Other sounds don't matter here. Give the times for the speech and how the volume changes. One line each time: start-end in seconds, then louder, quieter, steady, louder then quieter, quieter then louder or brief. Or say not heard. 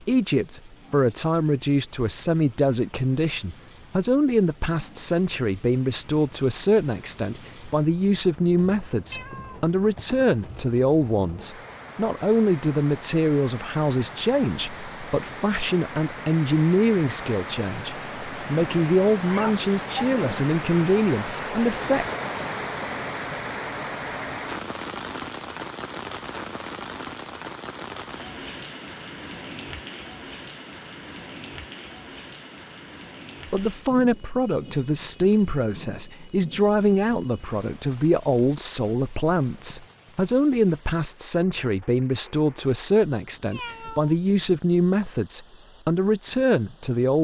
0.1-22.1 steady
33.5-47.1 steady.